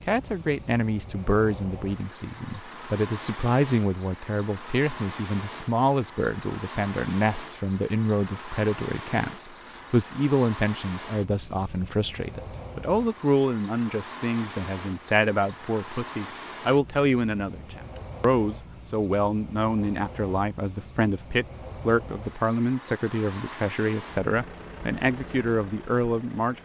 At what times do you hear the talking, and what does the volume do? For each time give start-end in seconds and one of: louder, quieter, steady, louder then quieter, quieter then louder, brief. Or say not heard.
0.0-26.6 steady.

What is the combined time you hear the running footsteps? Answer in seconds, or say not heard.
not heard.